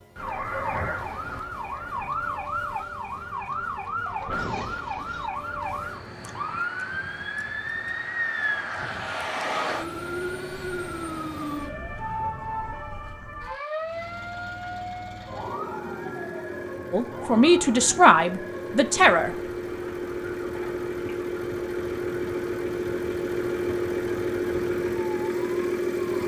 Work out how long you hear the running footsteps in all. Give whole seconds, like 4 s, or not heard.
not heard.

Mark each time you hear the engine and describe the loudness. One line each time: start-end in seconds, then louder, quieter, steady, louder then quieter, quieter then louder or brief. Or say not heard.
13.8-26.2 louder.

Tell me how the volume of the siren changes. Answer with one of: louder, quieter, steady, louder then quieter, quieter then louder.
quieter.